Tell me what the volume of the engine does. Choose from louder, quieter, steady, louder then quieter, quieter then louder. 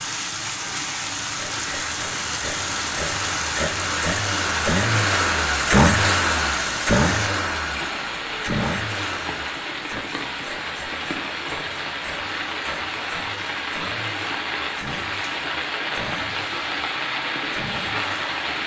louder then quieter.